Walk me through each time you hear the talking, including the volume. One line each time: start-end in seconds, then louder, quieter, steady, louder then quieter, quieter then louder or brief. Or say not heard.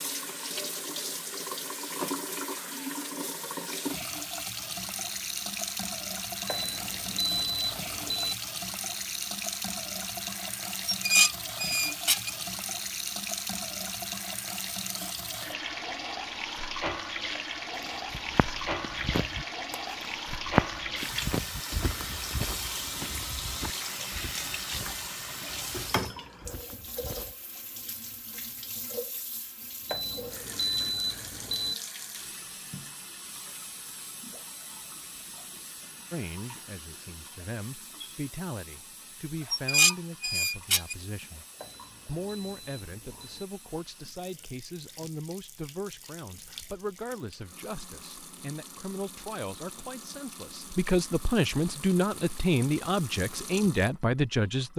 36.1-41.5 louder then quieter
42.0-54.7 louder.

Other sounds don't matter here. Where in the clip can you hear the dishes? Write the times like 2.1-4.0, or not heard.
10.8-12.3, 39.5-41.0.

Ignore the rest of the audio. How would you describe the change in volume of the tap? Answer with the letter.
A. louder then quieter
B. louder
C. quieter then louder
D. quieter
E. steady
D.